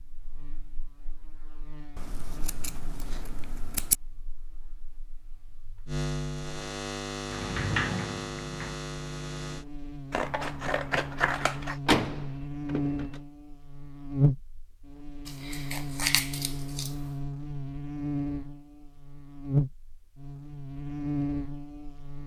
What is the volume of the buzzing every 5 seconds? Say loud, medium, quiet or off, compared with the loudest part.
quiet, loud, loud, loud, loud.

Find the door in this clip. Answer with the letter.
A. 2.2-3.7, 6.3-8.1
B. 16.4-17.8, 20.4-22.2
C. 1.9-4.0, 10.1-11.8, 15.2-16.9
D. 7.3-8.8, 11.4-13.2
D.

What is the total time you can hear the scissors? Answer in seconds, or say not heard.
5 s.